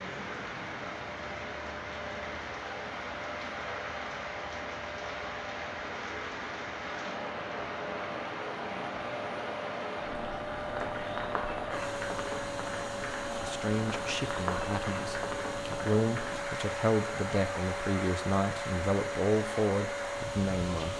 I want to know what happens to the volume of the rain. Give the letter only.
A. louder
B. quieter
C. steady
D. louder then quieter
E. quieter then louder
C.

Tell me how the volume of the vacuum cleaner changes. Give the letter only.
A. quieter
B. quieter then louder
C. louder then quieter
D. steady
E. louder
E.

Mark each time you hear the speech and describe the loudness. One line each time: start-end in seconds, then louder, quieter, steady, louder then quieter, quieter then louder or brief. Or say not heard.
13.4-20.9 louder.